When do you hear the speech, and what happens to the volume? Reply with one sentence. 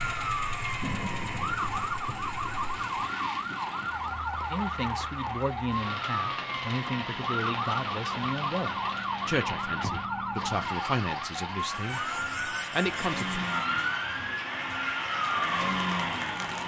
You can hear the speech from 4.5 to 13.5 s, at a steady volume.